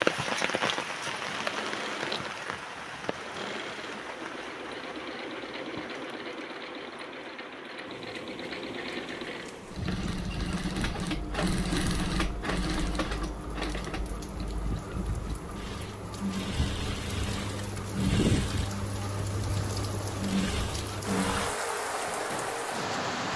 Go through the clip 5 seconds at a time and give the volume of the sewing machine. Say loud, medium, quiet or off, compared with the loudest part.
medium, medium, loud, loud, loud.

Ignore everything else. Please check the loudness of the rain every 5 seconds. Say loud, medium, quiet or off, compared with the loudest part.
loud, medium, medium, loud, loud.